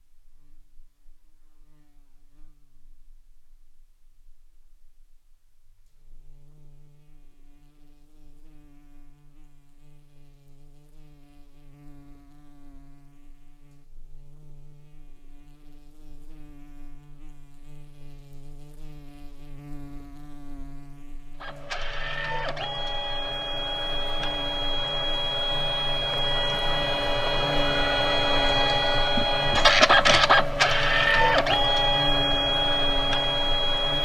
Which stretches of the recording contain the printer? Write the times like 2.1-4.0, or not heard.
21.4-33.9.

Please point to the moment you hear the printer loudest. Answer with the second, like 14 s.
30 s.